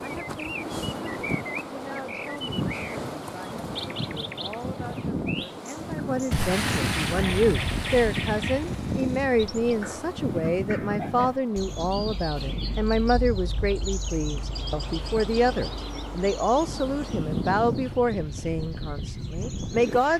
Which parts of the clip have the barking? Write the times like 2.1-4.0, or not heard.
not heard.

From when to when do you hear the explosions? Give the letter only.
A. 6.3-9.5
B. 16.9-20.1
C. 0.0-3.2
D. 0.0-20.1
A.